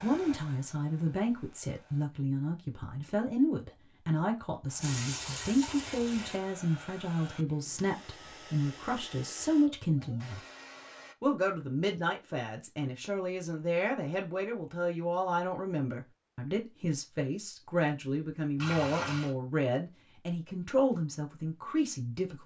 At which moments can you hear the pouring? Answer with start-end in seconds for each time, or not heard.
4.8-6.4, 18.6-19.4.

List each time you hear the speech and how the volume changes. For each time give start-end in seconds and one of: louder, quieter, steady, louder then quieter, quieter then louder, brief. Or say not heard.
0.0-10.4 steady
11.2-22.4 steady.